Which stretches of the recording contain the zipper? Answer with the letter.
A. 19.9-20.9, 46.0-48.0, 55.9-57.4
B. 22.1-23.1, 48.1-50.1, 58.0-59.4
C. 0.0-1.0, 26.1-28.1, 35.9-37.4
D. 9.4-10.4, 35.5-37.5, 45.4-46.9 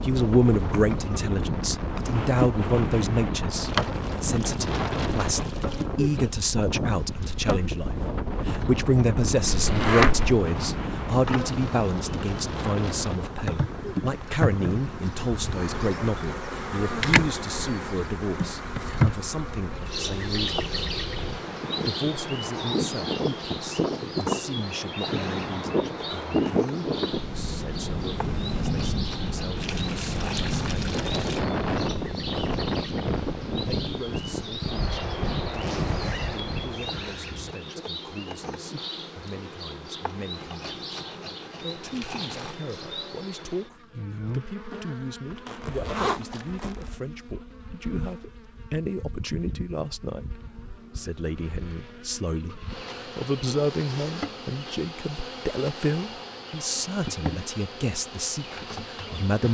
D.